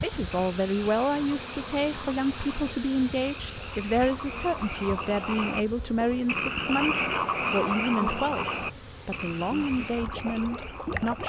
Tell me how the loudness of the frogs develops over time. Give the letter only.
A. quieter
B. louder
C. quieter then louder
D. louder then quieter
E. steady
D.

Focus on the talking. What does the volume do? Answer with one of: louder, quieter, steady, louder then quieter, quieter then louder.
steady.